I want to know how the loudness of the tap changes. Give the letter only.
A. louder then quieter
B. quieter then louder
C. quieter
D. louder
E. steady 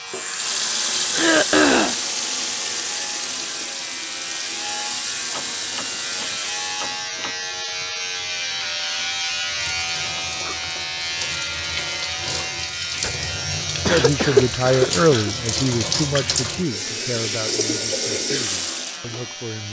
B.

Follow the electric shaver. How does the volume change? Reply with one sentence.
The volume of the electric shaver goes up, then down.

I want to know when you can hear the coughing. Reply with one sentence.
The coughing can be heard from 1.1 to 1.9 s and from 13.0 to 15.3 s.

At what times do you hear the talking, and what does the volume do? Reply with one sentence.
The talking can be heard from 13.8 to 19.6 s, getting quieter.